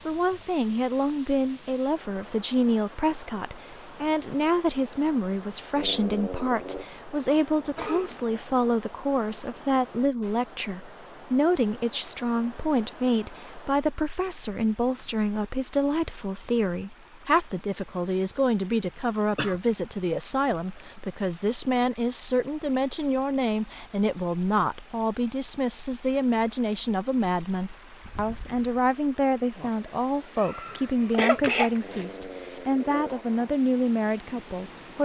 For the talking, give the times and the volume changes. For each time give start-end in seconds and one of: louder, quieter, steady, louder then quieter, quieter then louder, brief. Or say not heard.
0.1-35.0 steady.